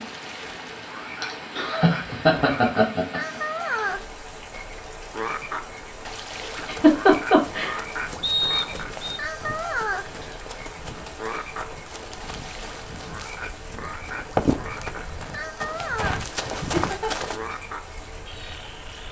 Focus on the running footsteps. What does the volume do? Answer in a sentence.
The loudness of the running footsteps goes up.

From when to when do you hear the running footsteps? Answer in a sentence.
You can hear the running footsteps from 6.8 to 17.4 s.